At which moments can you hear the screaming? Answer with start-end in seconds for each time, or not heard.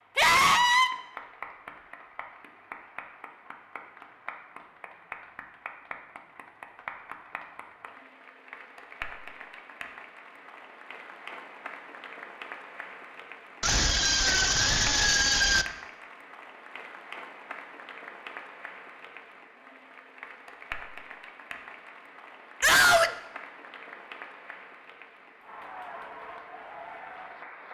0.1-0.9, 13.6-15.7, 22.6-23.1.